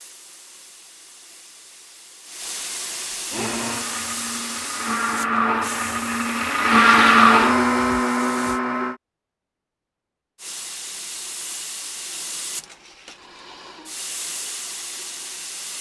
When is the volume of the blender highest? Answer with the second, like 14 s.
7 s.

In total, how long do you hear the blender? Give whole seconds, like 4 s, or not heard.
6 s.